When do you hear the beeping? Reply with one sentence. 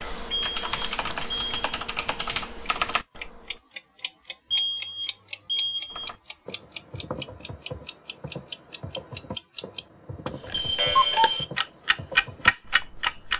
The beeping can be heard from 0.3 to 1.6 s, from 4.5 to 6.1 s and from 10.5 to 11.4 s.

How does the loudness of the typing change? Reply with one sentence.
The loudness of the typing goes down.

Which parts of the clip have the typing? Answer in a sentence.
The typing can be heard from 0.0 to 3.6 s and from 5.9 to 13.3 s.